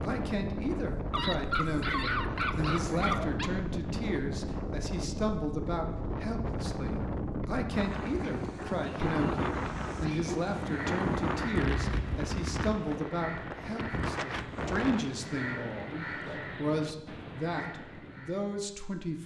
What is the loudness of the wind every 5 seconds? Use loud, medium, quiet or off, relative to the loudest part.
loud, loud, loud, quiet.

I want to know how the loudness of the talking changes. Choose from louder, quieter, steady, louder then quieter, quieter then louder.
steady.